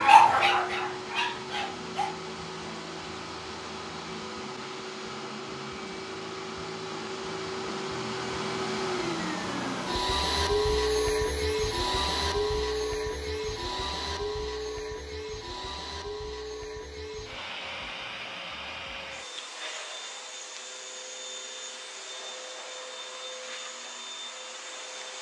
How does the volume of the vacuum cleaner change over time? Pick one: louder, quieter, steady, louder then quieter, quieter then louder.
louder then quieter.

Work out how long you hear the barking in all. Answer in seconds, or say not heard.
2 s.